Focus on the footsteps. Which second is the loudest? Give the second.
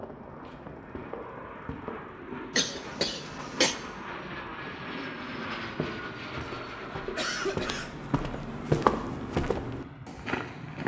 9 s.